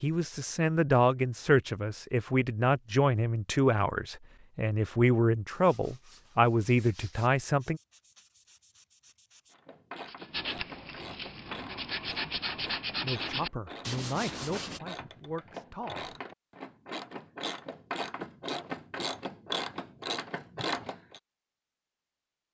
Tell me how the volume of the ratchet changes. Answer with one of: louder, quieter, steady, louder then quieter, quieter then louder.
louder.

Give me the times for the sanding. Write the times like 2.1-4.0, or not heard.
5.5-14.8.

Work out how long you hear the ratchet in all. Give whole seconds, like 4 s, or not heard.
12 s.